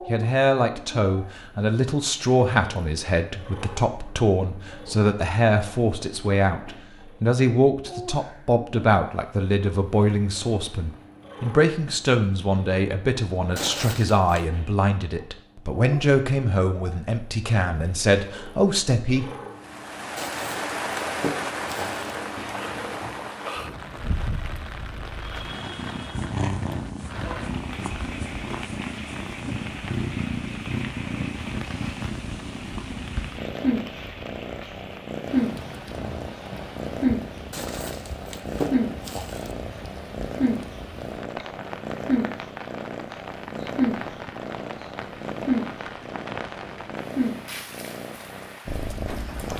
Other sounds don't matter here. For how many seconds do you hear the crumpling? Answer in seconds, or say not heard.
5 s.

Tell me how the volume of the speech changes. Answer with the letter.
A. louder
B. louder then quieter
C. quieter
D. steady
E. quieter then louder
D.